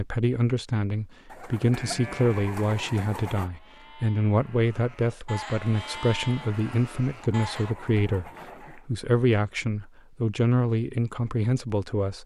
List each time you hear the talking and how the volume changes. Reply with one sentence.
You can hear the talking from 0.0 to 12.2 s, at a steady volume.